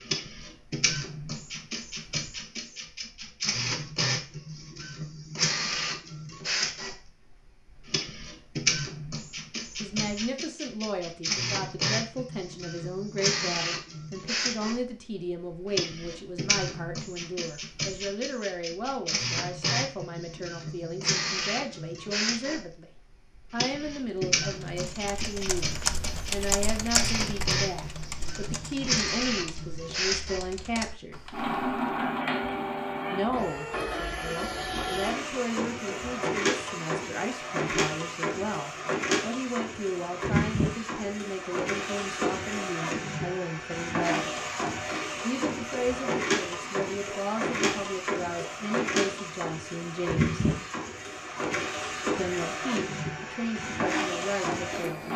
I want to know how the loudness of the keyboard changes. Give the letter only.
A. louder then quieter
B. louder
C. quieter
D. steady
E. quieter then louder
E.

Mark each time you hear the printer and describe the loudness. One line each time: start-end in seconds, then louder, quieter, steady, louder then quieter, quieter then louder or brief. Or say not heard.
0.0-55.1 steady.